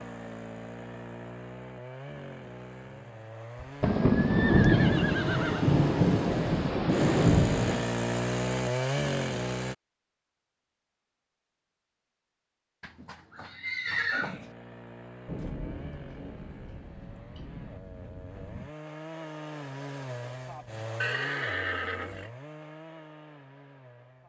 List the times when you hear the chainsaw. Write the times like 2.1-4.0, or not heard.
0.0-9.8, 14.3-24.2.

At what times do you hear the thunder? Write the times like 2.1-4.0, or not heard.
3.8-7.8, 15.2-18.7.